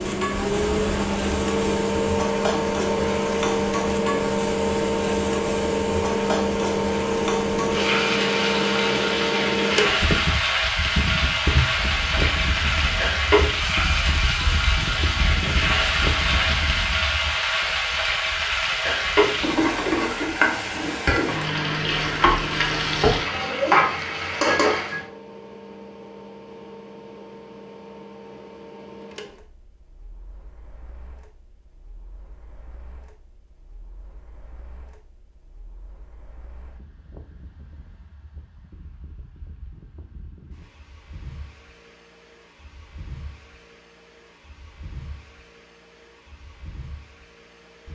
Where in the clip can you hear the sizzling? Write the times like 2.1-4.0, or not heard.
0.0-25.1.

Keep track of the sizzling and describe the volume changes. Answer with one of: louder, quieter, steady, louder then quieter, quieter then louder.
louder.